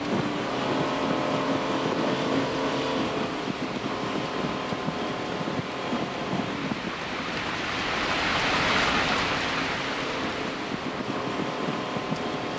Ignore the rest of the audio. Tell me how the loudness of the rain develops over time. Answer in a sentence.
The volume of the rain goes up, then down.